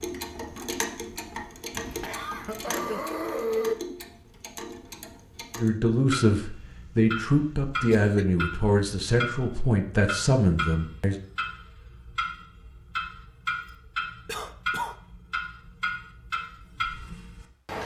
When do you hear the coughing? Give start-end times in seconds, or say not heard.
1.8-3.8, 6.5-8.2, 14.2-14.9.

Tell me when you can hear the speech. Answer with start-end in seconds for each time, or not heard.
5.5-11.2.